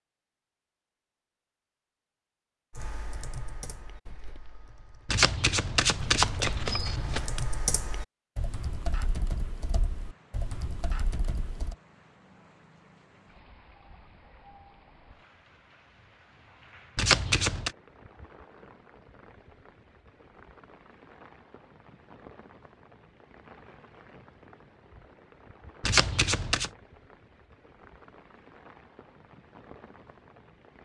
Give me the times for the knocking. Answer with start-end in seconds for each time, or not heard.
not heard.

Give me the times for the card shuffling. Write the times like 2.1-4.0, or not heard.
5.0-7.4, 16.9-17.7, 25.8-26.7.